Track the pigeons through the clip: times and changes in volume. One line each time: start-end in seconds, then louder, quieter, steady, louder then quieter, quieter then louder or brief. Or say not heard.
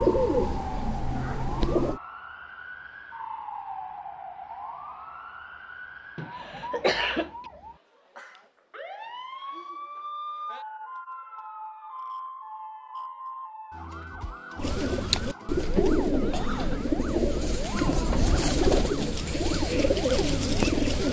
0.0-2.0 brief
14.6-21.0 steady.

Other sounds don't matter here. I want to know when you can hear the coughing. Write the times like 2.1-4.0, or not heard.
6.2-7.3, 16.3-16.9.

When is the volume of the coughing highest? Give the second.
7 s.